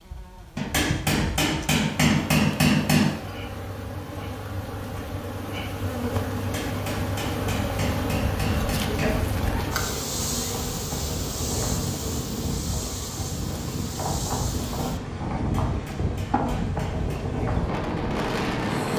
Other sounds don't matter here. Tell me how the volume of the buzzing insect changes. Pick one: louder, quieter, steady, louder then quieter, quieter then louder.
louder then quieter.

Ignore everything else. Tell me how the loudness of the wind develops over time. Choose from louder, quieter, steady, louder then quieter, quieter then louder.
louder.